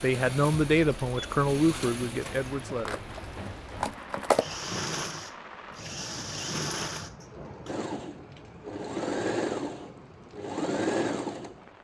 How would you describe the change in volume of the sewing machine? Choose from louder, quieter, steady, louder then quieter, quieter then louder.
louder.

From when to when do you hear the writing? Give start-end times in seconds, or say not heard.
not heard.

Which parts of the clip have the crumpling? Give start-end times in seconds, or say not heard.
2.2-4.6.